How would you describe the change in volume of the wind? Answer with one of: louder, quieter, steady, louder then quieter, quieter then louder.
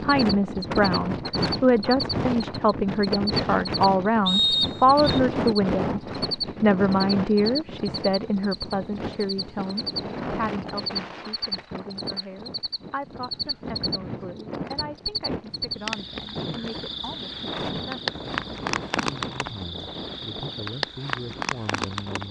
quieter.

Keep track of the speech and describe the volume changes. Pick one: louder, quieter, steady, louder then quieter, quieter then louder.
quieter.